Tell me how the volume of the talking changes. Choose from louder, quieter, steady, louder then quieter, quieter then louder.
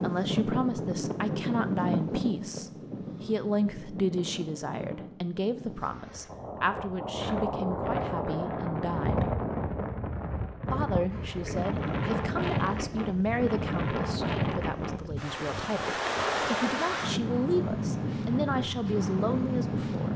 steady.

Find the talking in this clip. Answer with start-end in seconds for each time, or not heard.
0.0-9.2, 10.7-20.1.